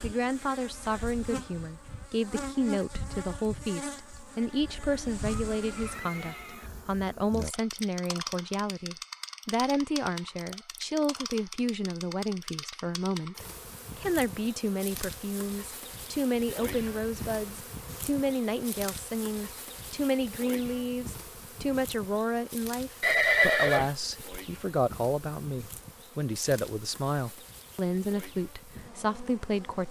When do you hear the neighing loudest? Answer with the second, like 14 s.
23 s.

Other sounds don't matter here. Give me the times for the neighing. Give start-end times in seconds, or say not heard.
4.7-6.7, 16.6-17.6, 23.0-24.4.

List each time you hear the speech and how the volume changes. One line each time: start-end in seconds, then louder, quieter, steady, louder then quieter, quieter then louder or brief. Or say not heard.
0.0-29.8 steady.